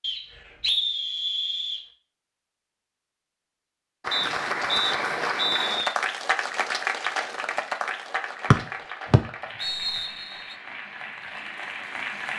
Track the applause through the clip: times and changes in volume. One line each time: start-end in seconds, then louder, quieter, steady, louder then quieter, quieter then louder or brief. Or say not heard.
4.0-12.3 quieter.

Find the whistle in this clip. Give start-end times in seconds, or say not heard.
0.0-1.9, 4.1-5.8, 8.5-10.1.